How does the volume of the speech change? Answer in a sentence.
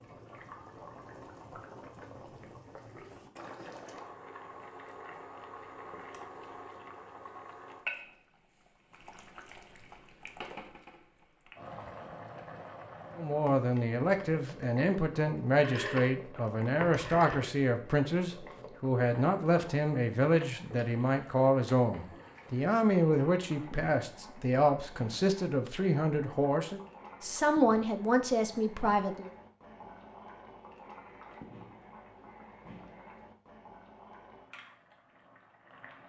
The loudness of the speech stays about the same.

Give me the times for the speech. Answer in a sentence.
You can hear the speech from 13.2 to 29.3 s.